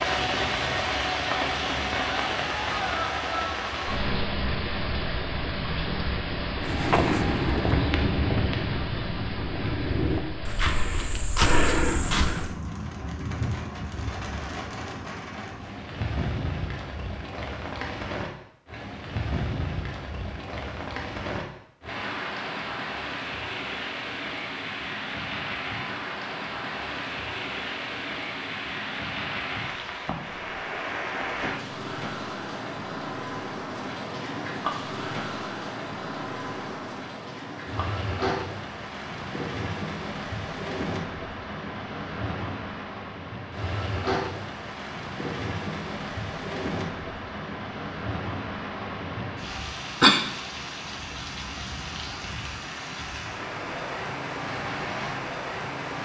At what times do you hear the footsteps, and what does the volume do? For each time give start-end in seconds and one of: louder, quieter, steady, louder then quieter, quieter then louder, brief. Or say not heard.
6.6-12.5 quieter then louder.